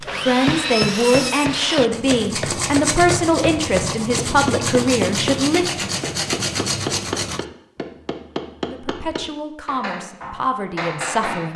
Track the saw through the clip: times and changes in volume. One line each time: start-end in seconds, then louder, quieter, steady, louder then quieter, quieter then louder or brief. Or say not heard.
0.0-7.5 steady.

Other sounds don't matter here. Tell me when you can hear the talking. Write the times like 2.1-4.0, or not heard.
0.2-5.9, 8.7-11.5.